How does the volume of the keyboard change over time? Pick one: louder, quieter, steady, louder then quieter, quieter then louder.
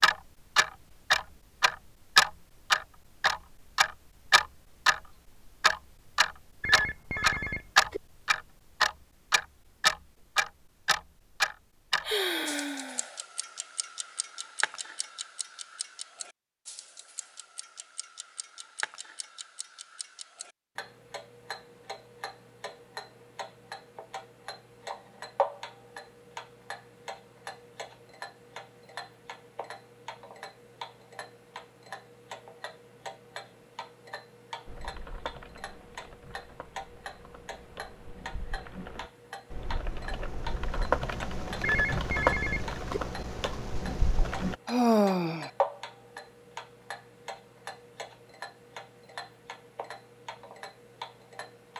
louder then quieter.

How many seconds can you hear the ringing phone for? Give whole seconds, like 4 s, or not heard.
3 s.